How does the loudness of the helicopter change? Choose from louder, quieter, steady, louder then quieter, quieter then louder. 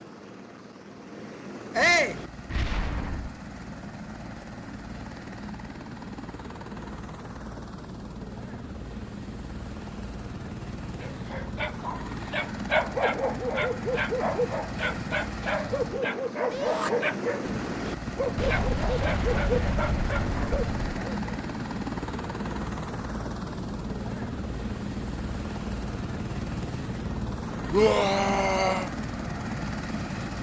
louder.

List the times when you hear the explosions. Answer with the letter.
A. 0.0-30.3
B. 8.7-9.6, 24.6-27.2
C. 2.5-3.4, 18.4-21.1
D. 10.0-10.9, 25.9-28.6
C.